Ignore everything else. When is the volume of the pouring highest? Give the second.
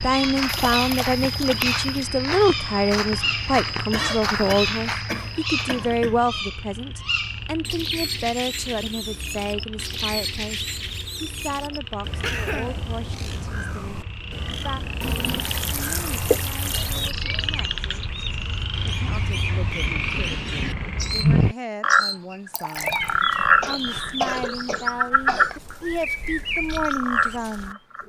16 s.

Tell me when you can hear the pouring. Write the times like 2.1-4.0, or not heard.
0.5-2.1, 15.0-17.1, 22.5-23.2.